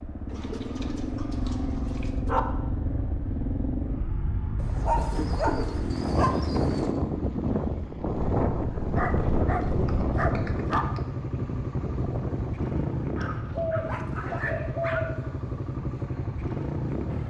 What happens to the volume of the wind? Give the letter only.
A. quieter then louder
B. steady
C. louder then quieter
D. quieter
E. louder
C.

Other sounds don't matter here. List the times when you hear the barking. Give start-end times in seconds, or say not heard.
1.4-2.4, 4.6-6.7, 8.8-10.8, 13.2-15.1.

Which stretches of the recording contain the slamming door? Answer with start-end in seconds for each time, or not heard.
not heard.